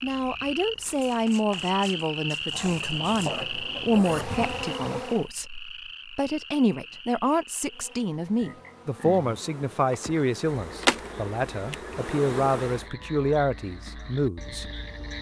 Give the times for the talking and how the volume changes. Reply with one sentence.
The talking can be heard from 0.0 to 14.7 s, at a steady volume.